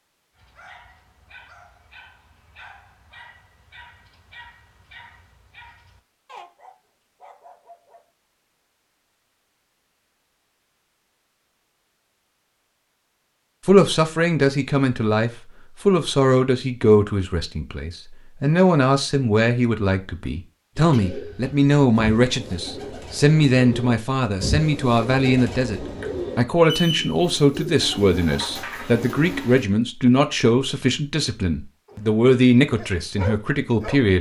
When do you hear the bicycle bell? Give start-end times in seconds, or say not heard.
not heard.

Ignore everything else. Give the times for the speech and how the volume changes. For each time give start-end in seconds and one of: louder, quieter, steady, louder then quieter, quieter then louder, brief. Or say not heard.
13.7-34.1 steady.